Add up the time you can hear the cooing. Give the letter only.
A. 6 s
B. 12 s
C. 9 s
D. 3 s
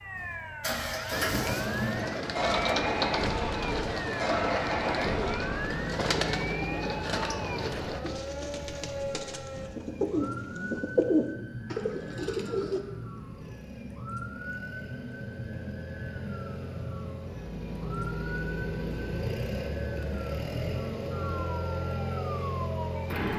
B.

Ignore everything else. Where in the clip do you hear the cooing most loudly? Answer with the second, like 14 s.
11 s.